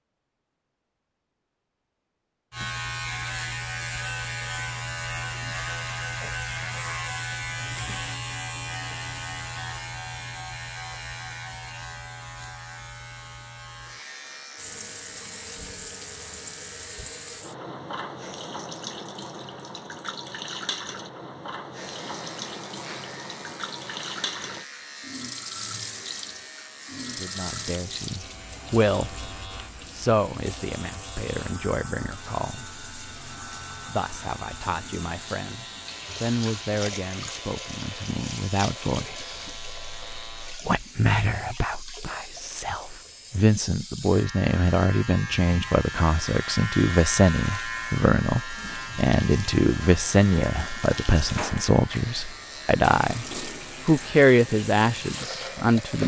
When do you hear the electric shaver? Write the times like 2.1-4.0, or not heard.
2.5-17.4, 21.7-56.0.